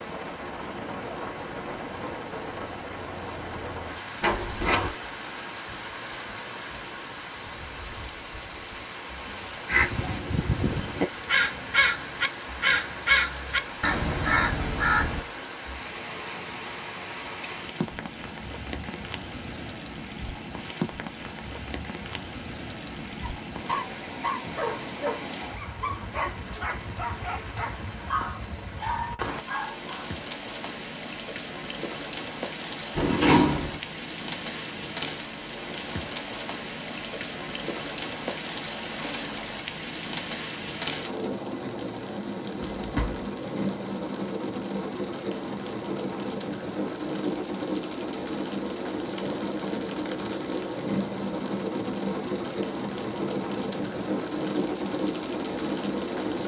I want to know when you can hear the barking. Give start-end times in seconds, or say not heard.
23.2-30.1.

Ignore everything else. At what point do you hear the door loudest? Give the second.
33 s.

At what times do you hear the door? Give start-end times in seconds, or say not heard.
4.2-4.9, 33.0-33.8, 42.8-43.3.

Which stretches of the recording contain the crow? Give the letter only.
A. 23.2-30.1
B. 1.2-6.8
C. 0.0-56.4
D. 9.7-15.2
D.